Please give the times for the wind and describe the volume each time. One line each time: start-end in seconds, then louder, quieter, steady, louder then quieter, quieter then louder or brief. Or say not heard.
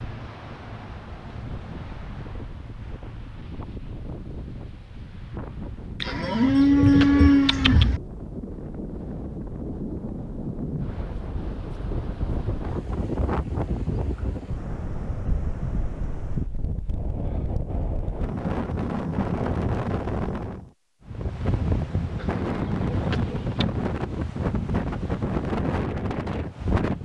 0.0-26.9 louder.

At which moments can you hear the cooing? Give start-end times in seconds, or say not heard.
6.0-8.0, 22.1-23.6.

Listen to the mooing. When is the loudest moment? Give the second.
7 s.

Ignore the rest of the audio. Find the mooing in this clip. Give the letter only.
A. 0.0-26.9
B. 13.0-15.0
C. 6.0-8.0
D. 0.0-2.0
C.